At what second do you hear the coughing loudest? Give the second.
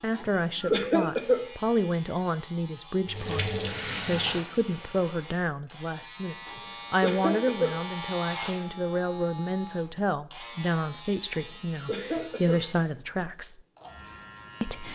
1 s.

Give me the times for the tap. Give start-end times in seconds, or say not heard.
3.0-5.3.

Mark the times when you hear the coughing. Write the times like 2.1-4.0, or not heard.
0.1-1.4, 6.5-7.8, 11.3-12.6.